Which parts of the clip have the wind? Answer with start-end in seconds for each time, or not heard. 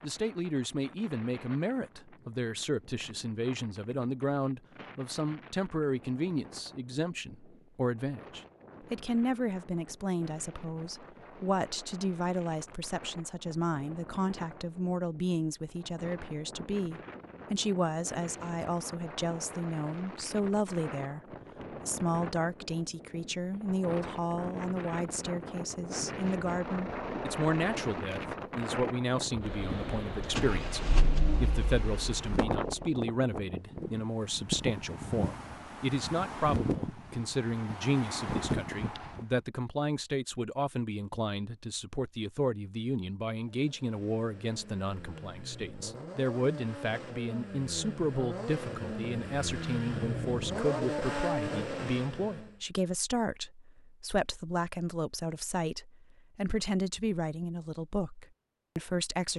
0.0-39.2.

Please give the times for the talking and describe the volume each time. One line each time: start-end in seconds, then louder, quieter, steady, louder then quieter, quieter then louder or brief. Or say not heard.
0.0-21.2 steady
21.9-59.3 steady.